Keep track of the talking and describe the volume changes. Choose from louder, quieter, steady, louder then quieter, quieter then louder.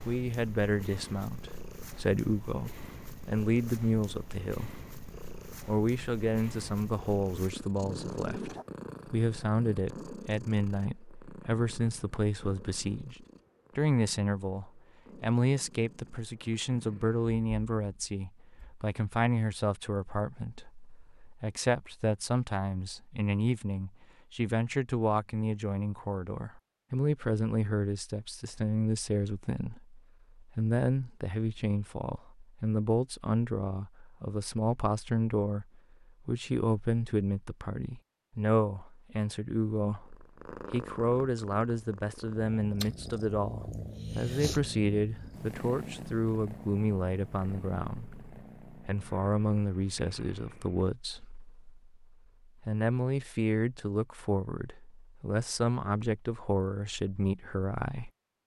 steady.